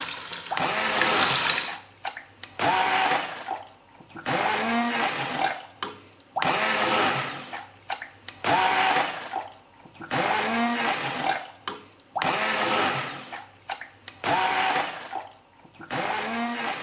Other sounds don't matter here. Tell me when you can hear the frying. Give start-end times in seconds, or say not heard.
0.0-1.8.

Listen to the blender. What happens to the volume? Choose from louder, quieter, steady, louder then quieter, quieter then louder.
steady.